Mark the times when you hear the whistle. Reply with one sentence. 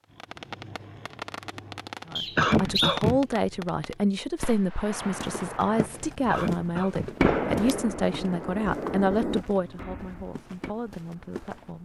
You can hear the whistle from 2.1 to 3.0 s.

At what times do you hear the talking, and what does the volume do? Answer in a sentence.
You can hear the talking from 2.0 to 11.8 s, getting quieter.